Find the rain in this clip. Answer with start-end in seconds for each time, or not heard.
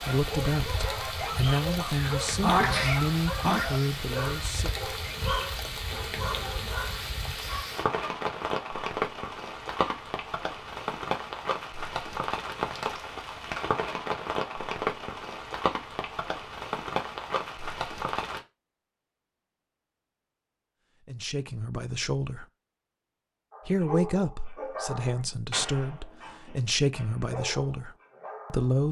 0.0-18.4.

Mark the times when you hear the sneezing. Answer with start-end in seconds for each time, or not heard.
1.9-3.6.